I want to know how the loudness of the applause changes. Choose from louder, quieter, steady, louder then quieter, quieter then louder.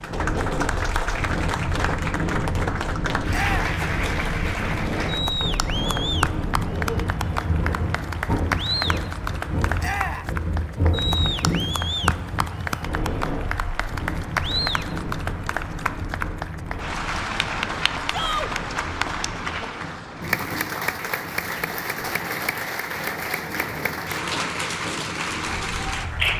steady.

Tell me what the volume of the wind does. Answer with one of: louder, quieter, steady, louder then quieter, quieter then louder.
quieter.